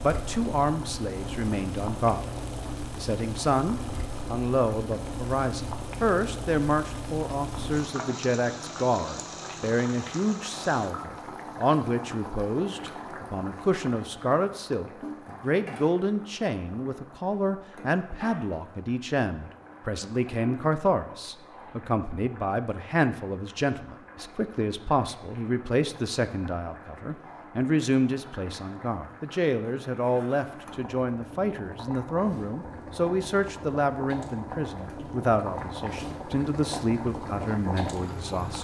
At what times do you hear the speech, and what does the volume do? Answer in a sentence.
You can hear the speech briefly from 0.0 to 2.2 s; and from 3.0 to 38.5 s, at a steady volume.